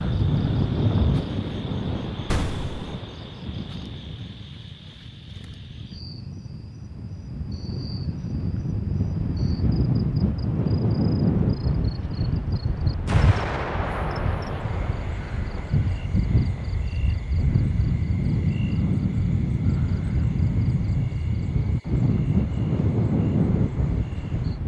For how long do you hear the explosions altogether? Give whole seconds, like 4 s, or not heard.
3 s.